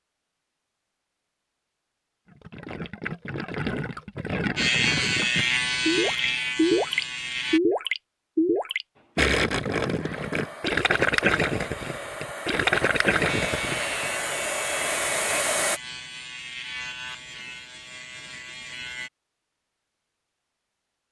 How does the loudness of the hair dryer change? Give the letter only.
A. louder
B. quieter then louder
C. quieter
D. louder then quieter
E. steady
A.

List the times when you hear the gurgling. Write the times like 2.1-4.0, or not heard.
2.3-14.1.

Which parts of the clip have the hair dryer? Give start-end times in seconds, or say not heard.
8.9-15.8.